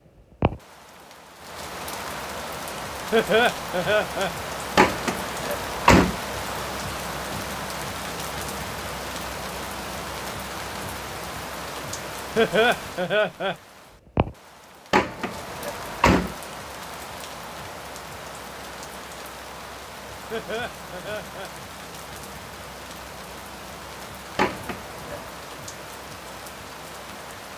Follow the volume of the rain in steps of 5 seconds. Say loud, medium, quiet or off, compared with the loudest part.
loud, loud, loud, medium, medium, medium.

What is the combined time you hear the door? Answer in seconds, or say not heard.
4 s.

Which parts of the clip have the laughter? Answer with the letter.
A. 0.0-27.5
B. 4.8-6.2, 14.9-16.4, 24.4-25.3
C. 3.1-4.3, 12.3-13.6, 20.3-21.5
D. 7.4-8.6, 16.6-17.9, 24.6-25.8
C.